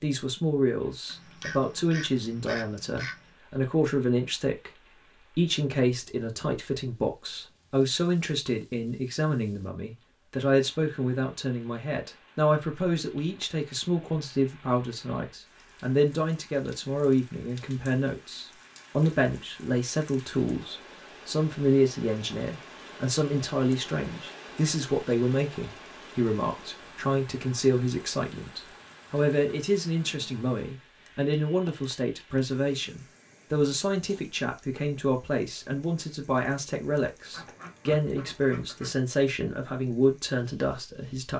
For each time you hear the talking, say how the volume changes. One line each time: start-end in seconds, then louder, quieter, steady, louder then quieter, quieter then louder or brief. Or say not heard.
0.0-41.3 steady.